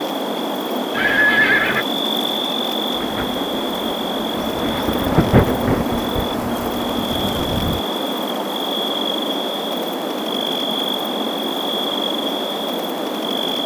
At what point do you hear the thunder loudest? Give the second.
5 s.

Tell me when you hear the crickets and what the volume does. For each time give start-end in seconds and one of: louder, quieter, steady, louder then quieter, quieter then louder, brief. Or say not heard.
0.0-13.6 steady.